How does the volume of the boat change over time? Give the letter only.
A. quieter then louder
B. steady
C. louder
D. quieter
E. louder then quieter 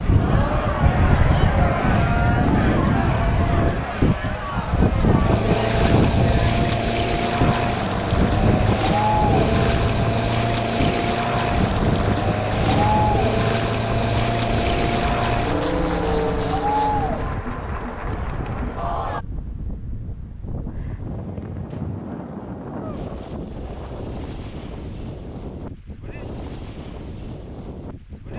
C.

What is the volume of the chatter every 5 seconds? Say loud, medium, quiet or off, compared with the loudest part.
loud, loud, loud, loud, off, off.